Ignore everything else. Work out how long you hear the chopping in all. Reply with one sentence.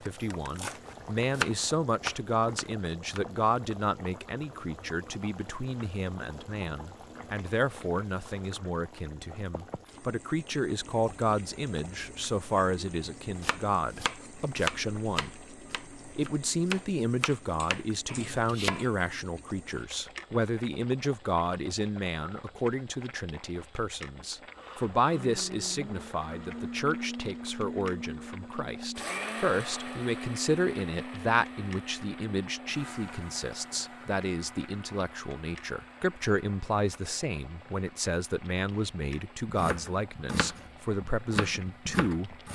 The chopping can be heard for 12 seconds in total.